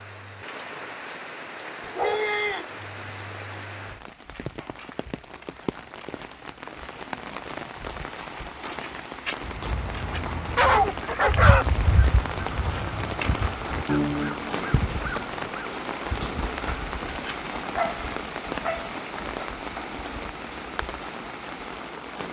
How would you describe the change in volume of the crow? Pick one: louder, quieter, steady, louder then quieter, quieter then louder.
louder.